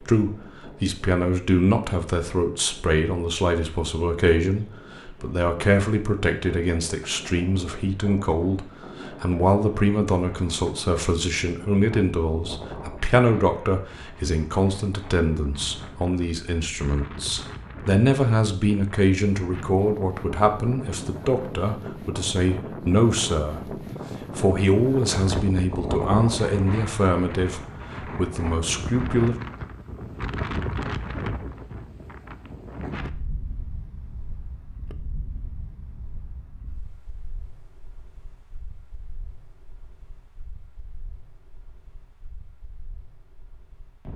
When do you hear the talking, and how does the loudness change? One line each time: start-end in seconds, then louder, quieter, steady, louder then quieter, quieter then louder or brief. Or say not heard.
0.0-29.4 steady.